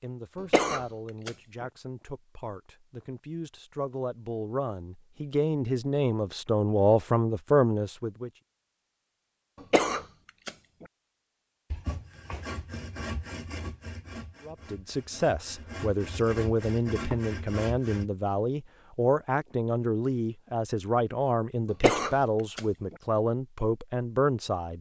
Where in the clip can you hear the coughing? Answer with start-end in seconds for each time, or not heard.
0.4-1.6, 9.6-10.8, 21.7-22.9.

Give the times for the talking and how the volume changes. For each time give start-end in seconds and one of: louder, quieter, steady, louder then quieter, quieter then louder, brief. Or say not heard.
0.0-8.3 louder
14.4-24.7 steady.